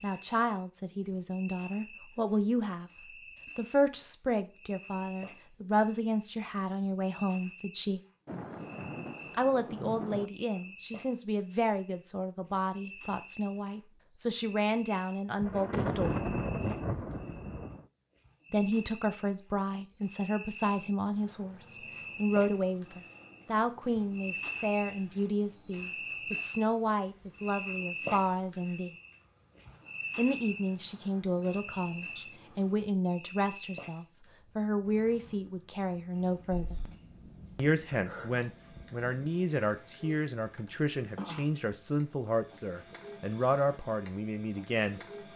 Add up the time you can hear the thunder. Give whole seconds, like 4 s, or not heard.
7 s.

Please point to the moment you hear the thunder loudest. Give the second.
16 s.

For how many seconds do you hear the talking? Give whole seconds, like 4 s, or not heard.
39 s.